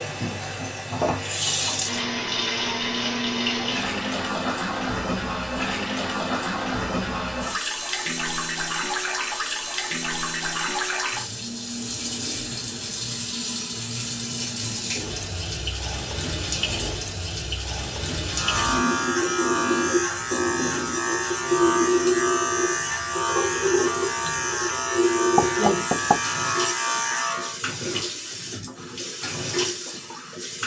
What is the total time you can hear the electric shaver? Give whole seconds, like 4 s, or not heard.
9 s.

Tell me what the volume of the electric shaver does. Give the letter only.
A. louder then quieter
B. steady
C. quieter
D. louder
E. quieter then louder
B.